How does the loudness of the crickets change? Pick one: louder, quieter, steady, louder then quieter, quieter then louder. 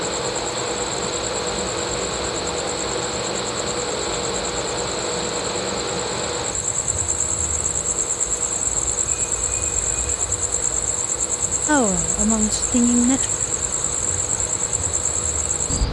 louder.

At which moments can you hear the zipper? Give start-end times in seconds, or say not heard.
not heard.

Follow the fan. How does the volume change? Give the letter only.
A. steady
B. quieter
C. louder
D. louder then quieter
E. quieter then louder
B.